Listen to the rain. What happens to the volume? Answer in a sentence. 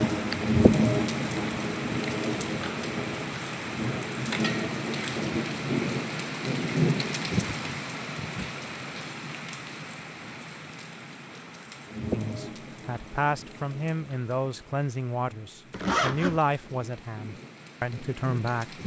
The volume of the rain goes down.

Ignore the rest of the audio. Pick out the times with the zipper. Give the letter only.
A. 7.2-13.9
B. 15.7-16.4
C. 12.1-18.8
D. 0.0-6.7
B.